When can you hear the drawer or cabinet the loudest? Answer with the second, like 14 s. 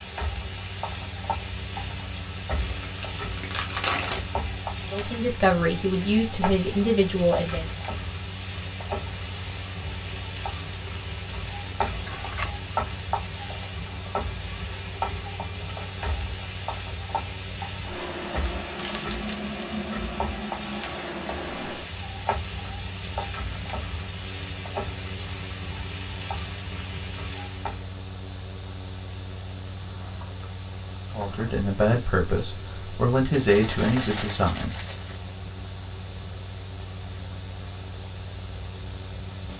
12 s.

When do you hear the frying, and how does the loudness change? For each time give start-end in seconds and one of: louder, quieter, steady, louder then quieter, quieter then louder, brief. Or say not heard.
0.0-27.9 steady.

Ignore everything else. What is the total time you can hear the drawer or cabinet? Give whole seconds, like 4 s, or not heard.
3 s.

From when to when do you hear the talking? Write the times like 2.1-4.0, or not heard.
4.9-7.7, 31.1-34.8.